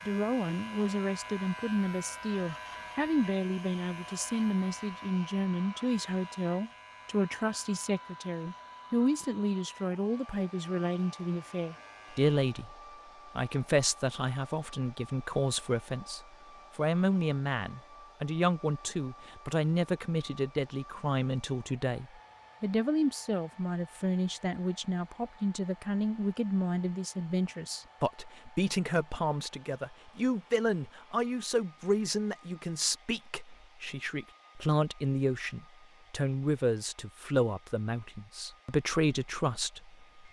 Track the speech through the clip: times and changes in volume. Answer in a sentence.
You can hear the speech from 0.1 to 12.8 s, at a steady volume; and from 13.3 to 40.2 s, at a steady volume.